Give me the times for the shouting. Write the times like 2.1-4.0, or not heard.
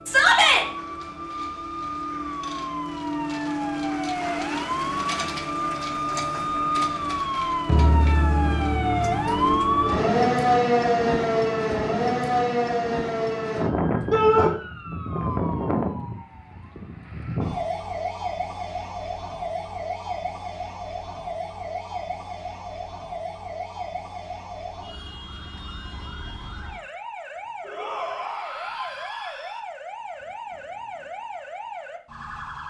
0.1-0.7, 14.1-14.5, 27.6-29.6.